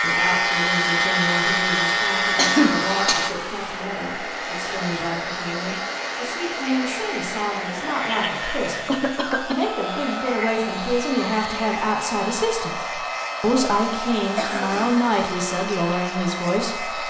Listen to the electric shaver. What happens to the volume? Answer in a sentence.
The volume of the electric shaver goes down.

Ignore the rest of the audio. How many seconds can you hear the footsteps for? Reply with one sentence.
The footsteps can't be heard in this clip.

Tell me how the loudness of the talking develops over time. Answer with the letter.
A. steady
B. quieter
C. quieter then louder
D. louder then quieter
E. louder
E.